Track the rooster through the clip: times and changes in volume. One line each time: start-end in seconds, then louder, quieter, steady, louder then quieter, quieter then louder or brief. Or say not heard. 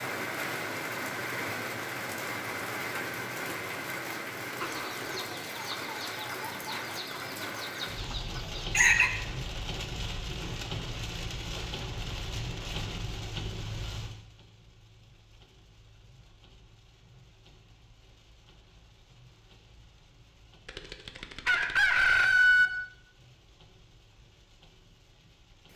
4.6-9.1 steady
20.6-22.7 brief.